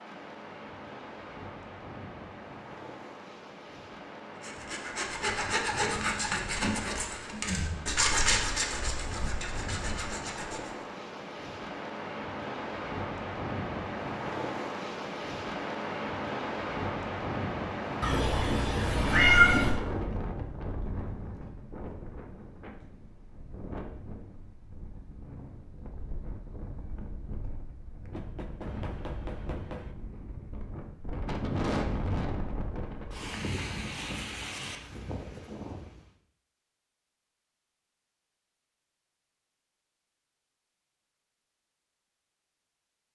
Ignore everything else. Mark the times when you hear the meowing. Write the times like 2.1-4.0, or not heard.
18.0-19.8.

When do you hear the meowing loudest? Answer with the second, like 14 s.
19 s.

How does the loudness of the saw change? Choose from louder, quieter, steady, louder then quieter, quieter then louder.
quieter.